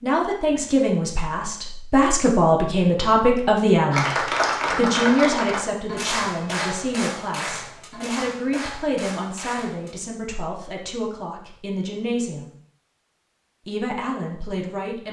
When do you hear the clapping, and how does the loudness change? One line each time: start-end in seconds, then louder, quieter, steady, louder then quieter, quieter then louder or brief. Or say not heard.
3.9-9.9 quieter.